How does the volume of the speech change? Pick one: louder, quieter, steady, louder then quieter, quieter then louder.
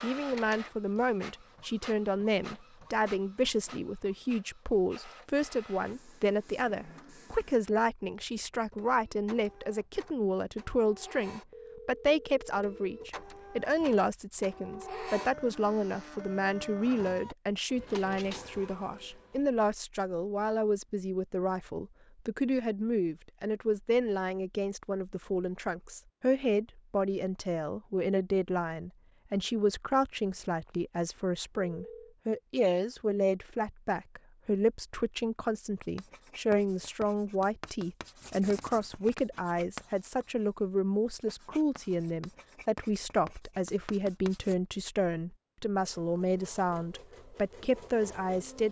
steady.